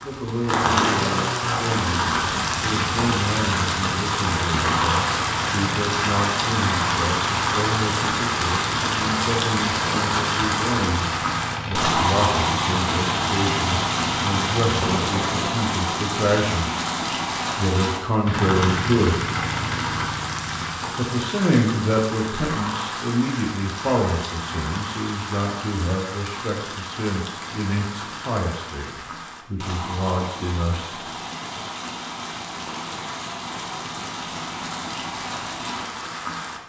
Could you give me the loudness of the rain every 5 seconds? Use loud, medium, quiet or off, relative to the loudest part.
loud, loud, loud, loud, medium, medium, medium, medium.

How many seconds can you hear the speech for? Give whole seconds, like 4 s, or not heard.
29 s.